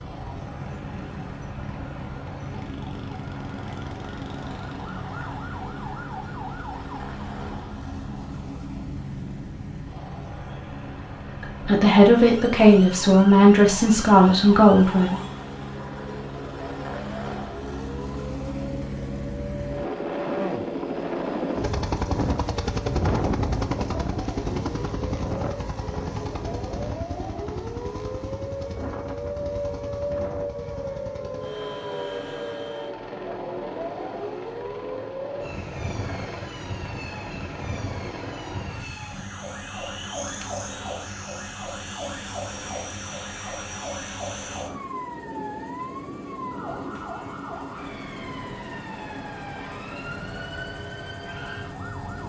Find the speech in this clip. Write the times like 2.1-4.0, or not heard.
11.4-15.2.